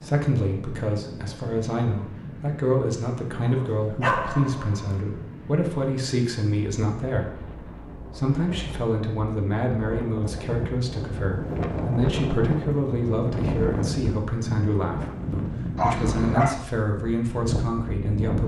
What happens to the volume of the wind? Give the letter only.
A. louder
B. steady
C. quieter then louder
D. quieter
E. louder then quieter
A.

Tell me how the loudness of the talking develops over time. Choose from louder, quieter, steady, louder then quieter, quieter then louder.
steady.